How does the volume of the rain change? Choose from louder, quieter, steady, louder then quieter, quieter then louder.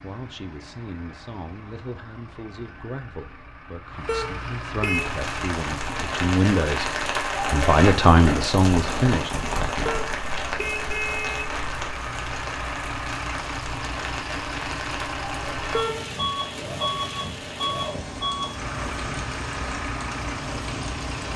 quieter.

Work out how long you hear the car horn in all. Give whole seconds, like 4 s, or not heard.
3 s.